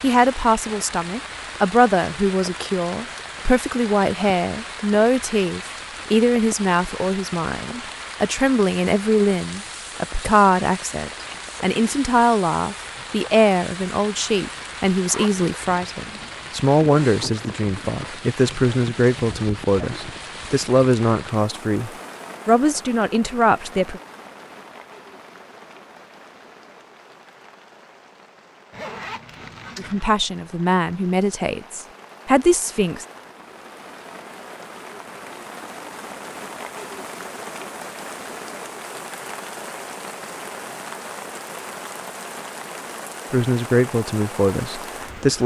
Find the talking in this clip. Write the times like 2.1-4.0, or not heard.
0.0-24.0, 29.8-33.0, 43.3-45.4.